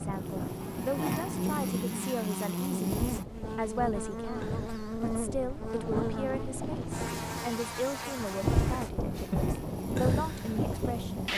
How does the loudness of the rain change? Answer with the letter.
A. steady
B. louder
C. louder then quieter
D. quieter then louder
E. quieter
B.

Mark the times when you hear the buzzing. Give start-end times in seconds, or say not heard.
0.0-11.3.